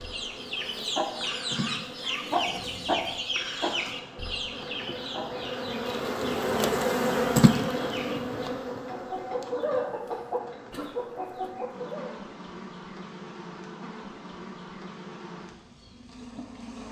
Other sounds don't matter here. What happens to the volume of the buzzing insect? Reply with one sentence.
The volume of the buzzing insect goes up, then down.